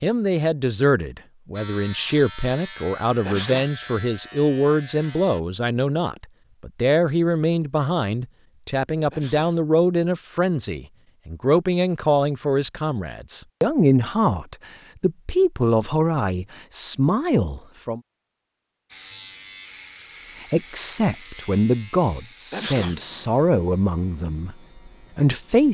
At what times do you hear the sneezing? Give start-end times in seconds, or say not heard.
3.2-3.8, 9.1-9.6, 22.5-23.0.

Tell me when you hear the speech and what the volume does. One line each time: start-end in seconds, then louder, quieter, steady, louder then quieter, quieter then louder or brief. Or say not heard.
0.0-18.0 steady
20.4-25.6 quieter.